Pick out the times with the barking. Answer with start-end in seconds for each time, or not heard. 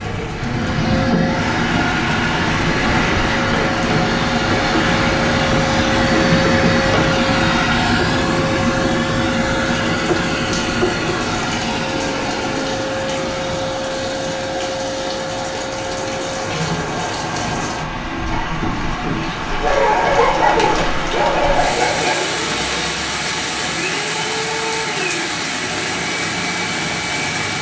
19.6-22.4.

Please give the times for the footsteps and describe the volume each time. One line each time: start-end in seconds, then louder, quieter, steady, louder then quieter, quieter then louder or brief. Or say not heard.
not heard.